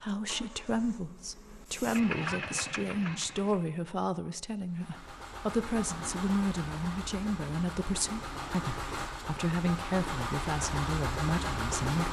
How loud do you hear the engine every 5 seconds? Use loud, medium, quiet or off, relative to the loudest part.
medium, medium, loud.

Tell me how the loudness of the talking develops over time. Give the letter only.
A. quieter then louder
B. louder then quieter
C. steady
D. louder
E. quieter
C.